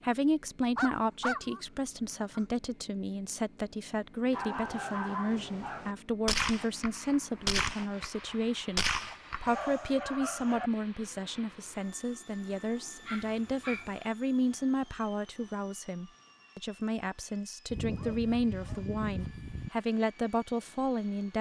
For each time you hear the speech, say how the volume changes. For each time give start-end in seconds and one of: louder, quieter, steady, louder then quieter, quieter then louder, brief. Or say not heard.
0.0-21.3 steady.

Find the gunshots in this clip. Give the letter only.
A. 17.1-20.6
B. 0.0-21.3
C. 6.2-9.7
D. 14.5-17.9
C.